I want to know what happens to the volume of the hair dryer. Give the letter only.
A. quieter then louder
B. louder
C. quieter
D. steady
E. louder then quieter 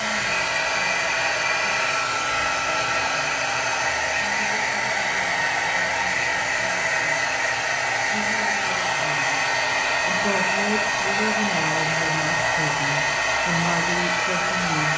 D.